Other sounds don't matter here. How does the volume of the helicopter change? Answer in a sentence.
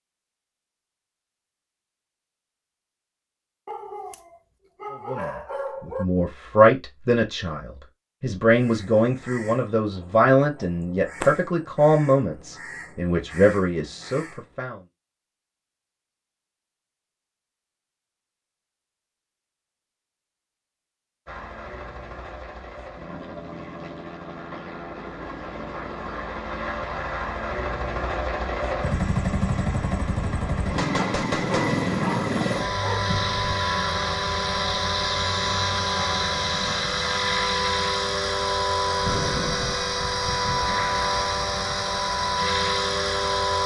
The loudness of the helicopter goes up.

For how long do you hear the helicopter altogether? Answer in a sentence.
The helicopter can be heard for 22 seconds in total.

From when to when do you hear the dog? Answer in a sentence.
You can hear the dog from 3.6 to 6.0 s and from 30.9 to 33.0 s.